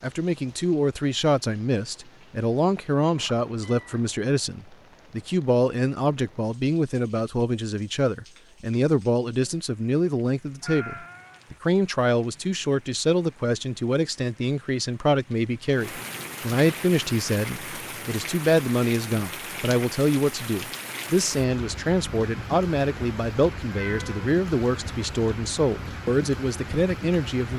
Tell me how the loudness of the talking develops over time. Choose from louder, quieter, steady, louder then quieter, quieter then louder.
steady.